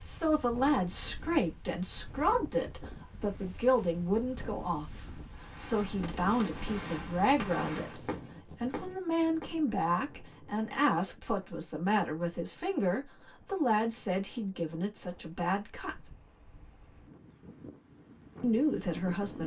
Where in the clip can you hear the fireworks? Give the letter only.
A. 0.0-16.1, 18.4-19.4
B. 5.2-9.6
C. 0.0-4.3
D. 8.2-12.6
B.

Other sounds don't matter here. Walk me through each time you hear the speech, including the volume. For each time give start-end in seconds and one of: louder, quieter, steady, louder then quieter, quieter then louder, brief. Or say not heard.
0.0-16.1 steady
18.4-19.4 brief.